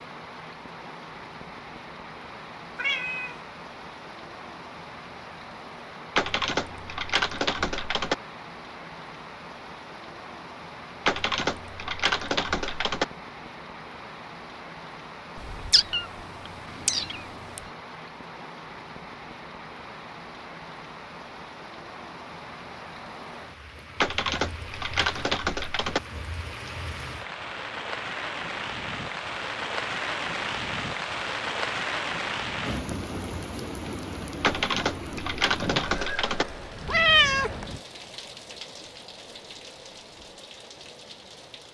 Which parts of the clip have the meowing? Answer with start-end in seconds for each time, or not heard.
2.8-3.4, 15.3-16.1, 16.9-17.6, 36.9-37.8.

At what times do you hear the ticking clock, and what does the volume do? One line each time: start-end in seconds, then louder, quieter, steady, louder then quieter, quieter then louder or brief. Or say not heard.
not heard.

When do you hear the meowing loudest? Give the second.
37 s.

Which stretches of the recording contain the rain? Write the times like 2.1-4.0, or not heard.
0.0-41.6.